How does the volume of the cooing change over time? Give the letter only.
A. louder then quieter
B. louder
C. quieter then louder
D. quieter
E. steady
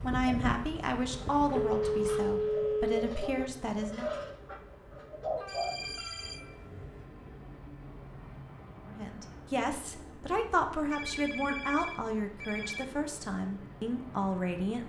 B.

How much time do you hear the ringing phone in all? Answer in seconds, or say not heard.
5 s.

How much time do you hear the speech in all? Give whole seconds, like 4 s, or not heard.
10 s.